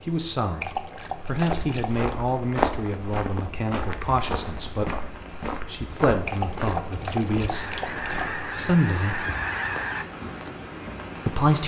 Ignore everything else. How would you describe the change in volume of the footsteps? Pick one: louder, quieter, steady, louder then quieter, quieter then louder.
quieter.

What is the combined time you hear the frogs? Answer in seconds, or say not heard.
not heard.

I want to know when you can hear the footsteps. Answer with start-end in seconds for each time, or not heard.
1.4-8.3.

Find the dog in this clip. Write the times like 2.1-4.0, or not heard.
0.6-2.1, 6.2-8.2.